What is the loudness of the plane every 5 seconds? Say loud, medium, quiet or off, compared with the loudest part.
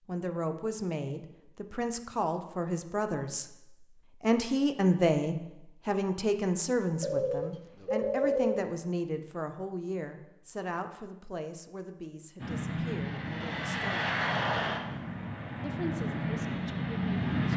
off, off, loud, loud.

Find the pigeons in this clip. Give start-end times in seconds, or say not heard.
7.0-8.7.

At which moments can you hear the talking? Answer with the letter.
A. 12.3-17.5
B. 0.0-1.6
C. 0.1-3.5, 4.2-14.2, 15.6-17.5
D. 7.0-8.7
C.